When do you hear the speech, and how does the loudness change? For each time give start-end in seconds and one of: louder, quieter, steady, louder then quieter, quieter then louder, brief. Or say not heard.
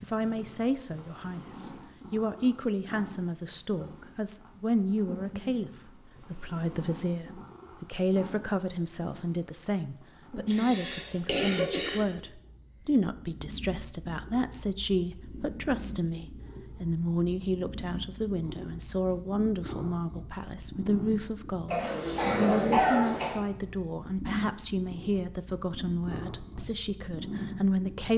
0.0-28.1 steady.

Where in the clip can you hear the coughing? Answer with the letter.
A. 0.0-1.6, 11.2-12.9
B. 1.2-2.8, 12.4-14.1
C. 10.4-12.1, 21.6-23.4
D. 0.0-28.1
C.